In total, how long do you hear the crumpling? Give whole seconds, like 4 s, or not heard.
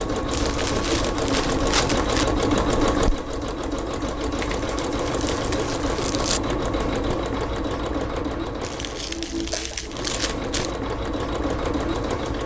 6 s.